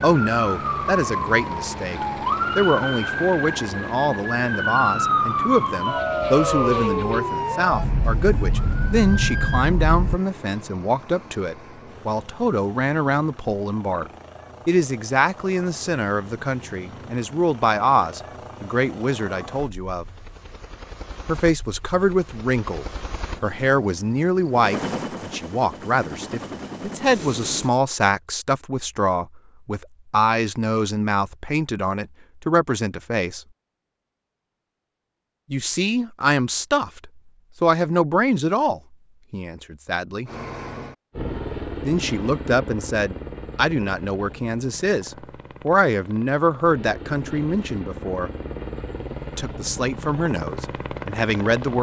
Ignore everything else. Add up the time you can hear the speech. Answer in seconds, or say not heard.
46 s.